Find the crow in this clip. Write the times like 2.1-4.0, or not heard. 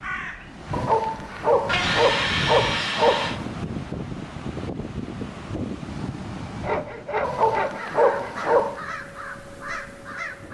0.0-1.6, 7.7-10.4.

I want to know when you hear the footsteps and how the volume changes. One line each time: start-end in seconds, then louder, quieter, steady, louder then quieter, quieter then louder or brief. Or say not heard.
not heard.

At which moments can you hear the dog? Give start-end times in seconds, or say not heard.
0.7-3.5, 7.2-8.8.